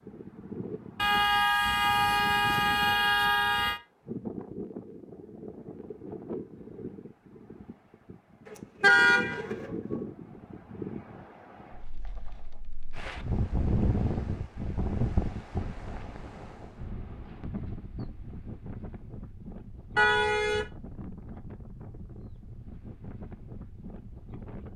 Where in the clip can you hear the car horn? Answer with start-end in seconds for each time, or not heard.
0.9-3.8, 8.4-10.0, 19.9-20.6.